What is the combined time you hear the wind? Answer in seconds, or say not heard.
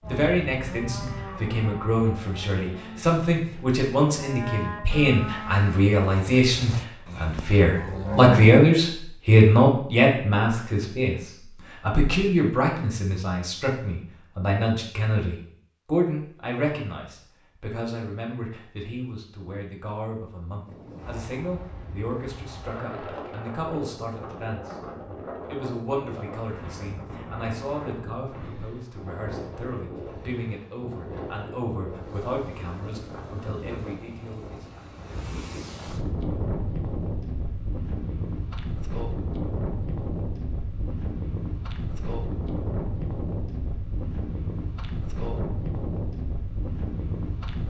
27 s.